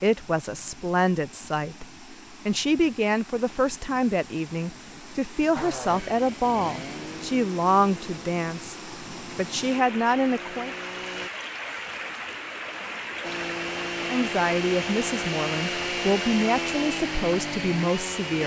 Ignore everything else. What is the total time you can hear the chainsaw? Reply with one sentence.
You can hear the chainsaw for 11 seconds altogether.